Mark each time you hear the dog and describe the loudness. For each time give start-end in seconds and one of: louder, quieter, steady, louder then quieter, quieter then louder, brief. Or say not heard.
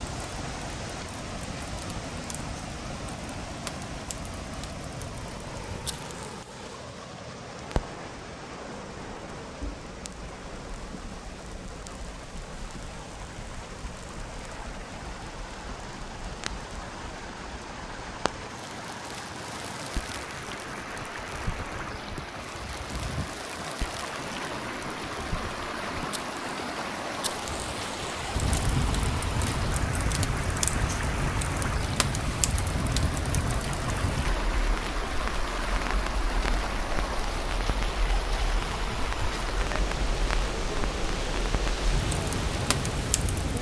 not heard.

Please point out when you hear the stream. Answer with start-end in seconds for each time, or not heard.
0.0-43.5.